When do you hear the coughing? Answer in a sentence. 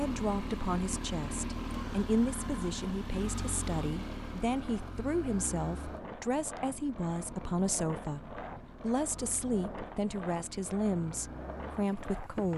You can't hear the coughing here.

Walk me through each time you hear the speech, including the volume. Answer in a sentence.
You can hear the speech from 0.0 to 12.5 s, at a steady volume.